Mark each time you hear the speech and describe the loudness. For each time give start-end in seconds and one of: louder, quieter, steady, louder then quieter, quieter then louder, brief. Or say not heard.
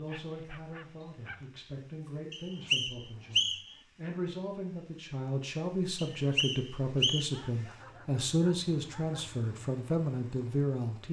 0.0-11.0 louder.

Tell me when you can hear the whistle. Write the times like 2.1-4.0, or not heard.
2.3-3.8, 6.0-7.4.